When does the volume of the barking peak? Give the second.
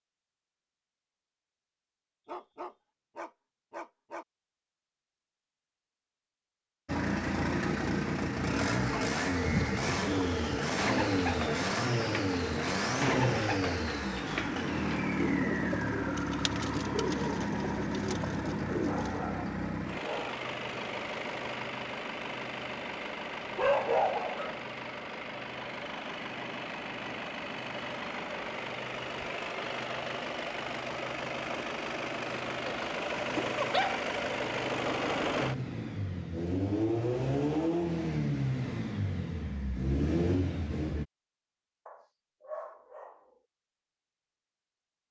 24 s.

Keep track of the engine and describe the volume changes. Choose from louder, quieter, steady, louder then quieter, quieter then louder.
quieter then louder.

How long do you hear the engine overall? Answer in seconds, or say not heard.
34 s.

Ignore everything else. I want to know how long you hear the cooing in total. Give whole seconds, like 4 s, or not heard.
10 s.